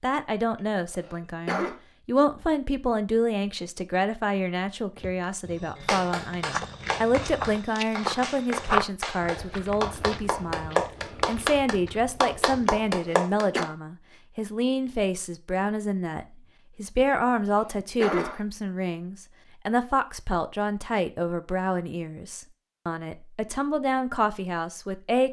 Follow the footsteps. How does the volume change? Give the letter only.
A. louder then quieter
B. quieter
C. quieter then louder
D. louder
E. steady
A.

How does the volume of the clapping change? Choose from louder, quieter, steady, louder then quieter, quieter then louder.
louder.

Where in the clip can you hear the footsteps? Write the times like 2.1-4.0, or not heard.
5.0-12.9.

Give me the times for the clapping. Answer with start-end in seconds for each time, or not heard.
5.8-13.7.